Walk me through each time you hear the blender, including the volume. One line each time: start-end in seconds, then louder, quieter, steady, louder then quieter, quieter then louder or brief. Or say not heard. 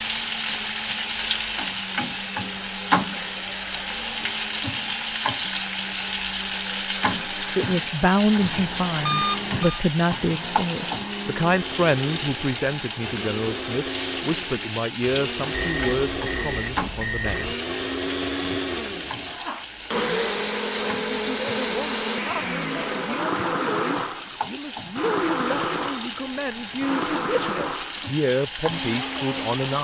0.0-29.7 louder.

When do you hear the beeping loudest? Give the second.
9 s.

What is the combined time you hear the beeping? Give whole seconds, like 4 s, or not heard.
3 s.